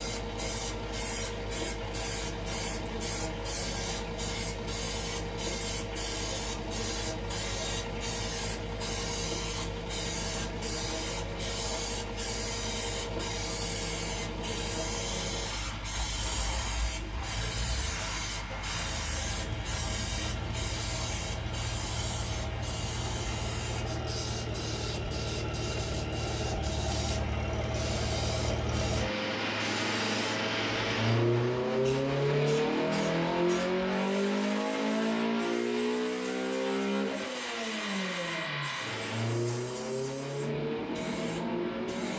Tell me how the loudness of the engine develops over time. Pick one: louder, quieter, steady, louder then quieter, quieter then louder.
louder.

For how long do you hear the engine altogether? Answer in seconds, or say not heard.
42 s.